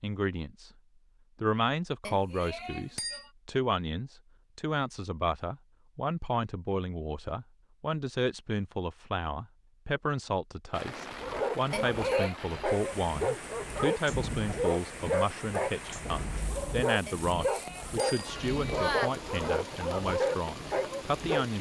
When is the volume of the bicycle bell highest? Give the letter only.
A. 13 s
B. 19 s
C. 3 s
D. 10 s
B.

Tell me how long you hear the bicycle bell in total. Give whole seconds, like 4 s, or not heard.
4 s.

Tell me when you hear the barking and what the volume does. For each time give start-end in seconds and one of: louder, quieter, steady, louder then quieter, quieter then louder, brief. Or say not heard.
11.2-21.5 steady.